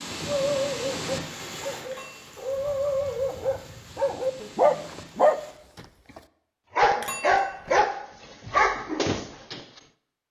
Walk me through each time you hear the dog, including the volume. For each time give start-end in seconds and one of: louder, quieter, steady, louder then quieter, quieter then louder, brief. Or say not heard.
0.2-9.7 louder.